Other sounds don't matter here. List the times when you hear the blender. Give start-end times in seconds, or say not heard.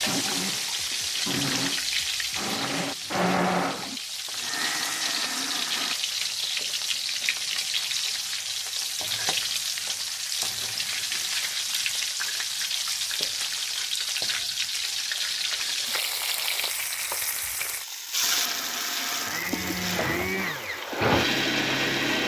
0.0-6.0, 18.2-22.2.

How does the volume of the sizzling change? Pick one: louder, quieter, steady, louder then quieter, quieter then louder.
steady.